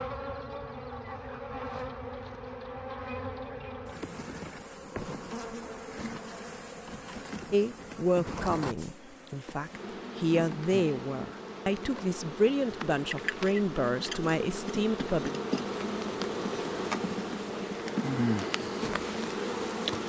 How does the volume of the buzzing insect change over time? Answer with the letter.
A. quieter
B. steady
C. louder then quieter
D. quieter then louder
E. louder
E.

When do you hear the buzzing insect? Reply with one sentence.
The buzzing insect can be heard from 0.0 to 20.0 s.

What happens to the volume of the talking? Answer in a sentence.
The volume of the talking stays about the same.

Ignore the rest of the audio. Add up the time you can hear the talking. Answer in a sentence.
You can hear the talking for 8 seconds altogether.